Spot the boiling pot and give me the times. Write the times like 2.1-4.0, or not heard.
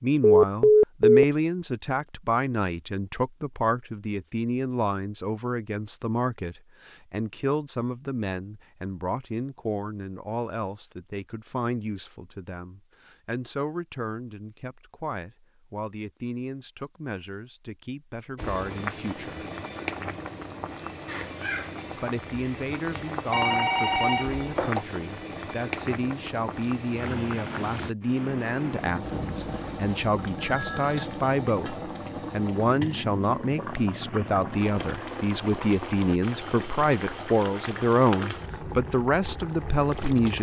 18.4-40.3.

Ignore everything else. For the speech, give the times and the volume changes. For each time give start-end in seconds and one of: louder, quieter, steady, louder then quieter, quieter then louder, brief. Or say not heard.
0.0-19.5 quieter
21.9-40.3 louder.